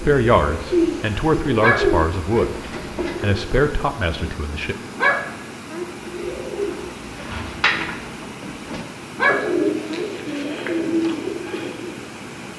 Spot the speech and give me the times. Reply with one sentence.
You can hear the speech from 0.0 to 2.5 s and from 3.2 to 4.8 s.